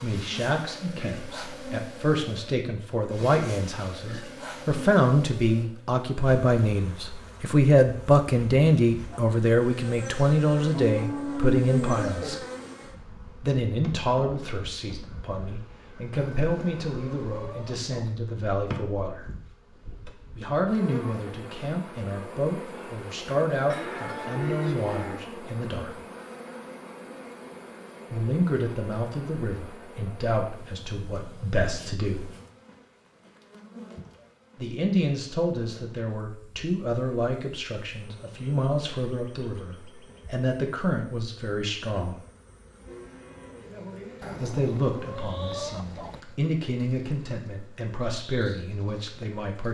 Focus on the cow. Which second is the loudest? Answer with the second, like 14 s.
12 s.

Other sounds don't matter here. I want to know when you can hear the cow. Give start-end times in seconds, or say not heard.
10.7-12.3, 23.7-25.2, 42.9-44.5.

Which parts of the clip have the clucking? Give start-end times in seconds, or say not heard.
16.1-18.1, 44.2-46.2.